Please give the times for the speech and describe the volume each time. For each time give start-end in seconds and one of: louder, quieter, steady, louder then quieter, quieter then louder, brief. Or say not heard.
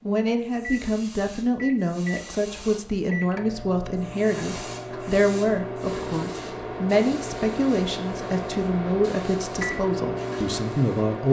0.1-11.2 steady.